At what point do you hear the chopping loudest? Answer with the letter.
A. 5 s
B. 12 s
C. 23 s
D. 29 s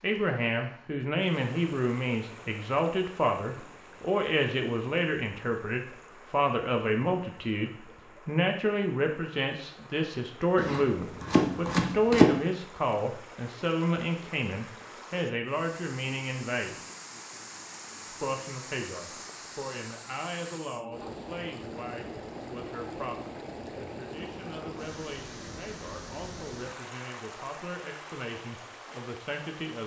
B.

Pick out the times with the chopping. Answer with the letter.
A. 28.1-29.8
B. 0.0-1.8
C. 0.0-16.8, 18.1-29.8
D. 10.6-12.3
D.